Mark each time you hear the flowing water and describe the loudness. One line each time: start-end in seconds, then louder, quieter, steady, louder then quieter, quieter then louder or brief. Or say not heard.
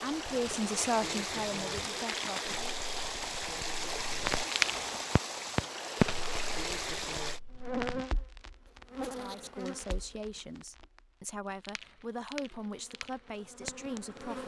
0.0-7.4 steady.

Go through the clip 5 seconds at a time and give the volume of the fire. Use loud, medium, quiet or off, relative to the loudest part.
loud, loud, quiet.